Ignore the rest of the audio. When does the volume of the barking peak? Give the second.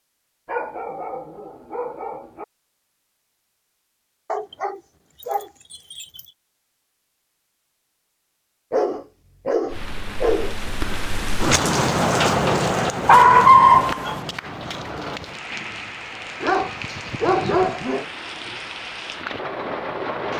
14 s.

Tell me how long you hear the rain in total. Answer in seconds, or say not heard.
11 s.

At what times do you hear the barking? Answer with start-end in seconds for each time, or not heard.
0.5-2.5, 4.3-6.2, 8.7-10.6, 13.1-14.2, 16.4-18.1.